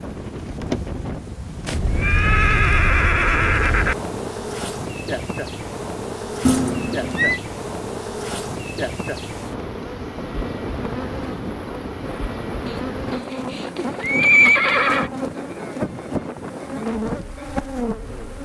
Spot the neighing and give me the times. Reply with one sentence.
You can hear the neighing from 1.6 to 4.0 s, from 6.5 to 7.4 s and from 12.7 to 15.1 s.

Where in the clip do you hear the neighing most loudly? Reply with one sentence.
The loudest moment of the neighing is at 14 seconds.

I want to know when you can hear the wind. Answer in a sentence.
You can hear the wind from 0.0 to 18.4 s.